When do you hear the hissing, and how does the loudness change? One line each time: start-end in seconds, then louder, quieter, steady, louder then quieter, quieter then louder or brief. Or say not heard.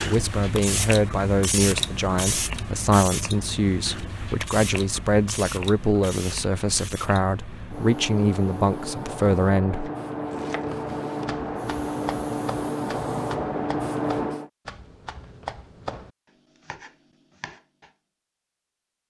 0.0-14.5 quieter then louder.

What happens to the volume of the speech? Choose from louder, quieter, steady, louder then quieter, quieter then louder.
steady.